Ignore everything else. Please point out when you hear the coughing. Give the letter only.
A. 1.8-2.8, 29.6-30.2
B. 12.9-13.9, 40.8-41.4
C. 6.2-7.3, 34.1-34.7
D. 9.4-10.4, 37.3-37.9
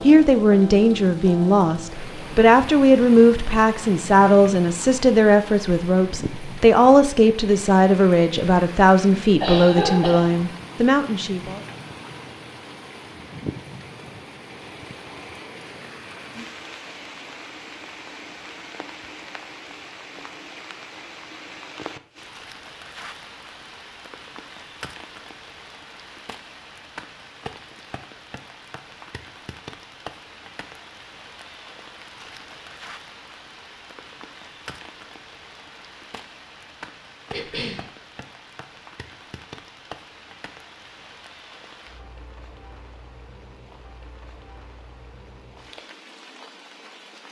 D.